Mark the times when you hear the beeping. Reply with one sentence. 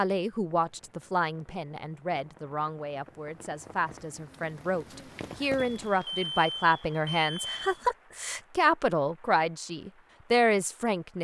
The beeping can be heard from 5.8 to 7.8 s.